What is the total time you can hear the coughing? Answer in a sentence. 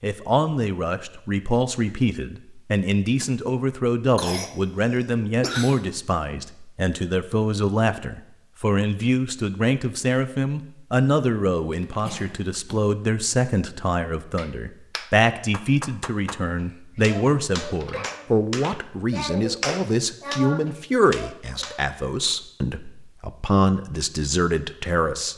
The coughing can be heard for 4 seconds in total.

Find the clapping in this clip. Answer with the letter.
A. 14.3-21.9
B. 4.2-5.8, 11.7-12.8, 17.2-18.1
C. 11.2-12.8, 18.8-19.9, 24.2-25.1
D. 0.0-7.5
A.